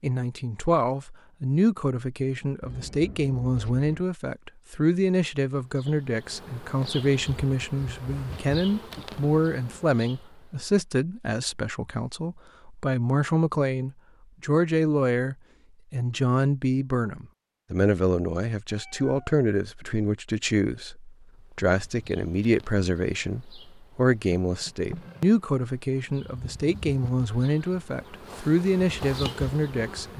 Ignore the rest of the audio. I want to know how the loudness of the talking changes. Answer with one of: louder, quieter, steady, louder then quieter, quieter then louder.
steady.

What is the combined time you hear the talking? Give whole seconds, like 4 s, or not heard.
30 s.